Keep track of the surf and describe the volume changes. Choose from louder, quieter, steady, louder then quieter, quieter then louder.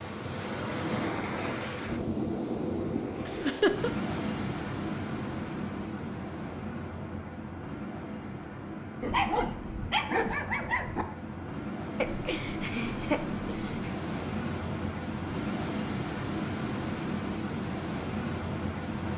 quieter then louder.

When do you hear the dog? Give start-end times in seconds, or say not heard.
9.0-11.1.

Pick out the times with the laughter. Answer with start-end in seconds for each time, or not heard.
3.2-3.9, 12.0-13.9.